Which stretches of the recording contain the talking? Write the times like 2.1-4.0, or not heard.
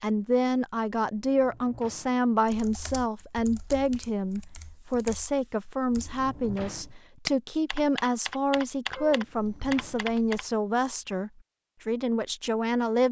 0.0-13.0.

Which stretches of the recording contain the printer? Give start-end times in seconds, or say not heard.
not heard.